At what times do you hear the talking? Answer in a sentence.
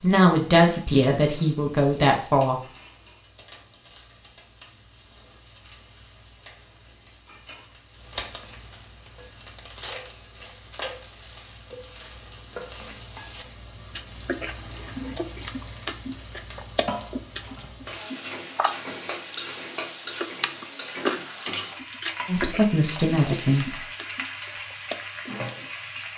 You can hear the talking from 0.0 to 2.6 s and from 22.2 to 23.8 s.